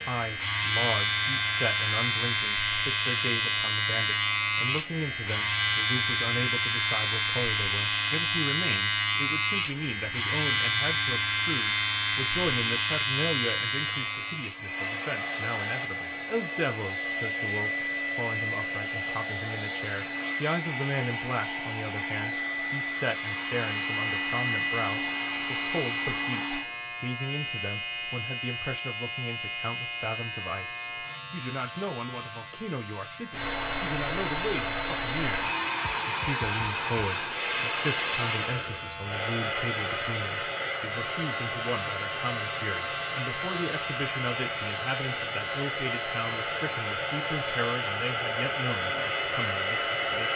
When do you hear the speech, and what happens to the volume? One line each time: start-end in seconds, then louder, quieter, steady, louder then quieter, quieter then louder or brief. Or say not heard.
0.0-50.3 steady.